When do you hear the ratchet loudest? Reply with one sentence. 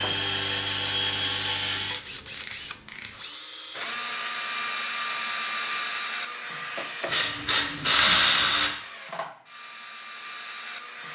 The volume of the ratchet peaks at 8 seconds.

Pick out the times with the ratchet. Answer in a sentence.
The ratchet can be heard from 1.8 to 3.1 s and from 7.0 to 8.7 s.